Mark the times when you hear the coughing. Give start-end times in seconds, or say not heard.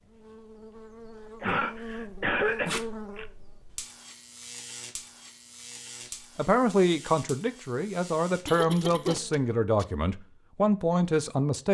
1.4-3.2, 8.4-9.2.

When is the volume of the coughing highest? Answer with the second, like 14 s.
2 s.